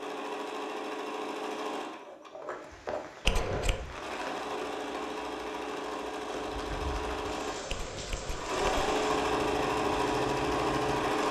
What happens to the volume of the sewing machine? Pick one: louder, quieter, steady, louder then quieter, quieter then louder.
louder.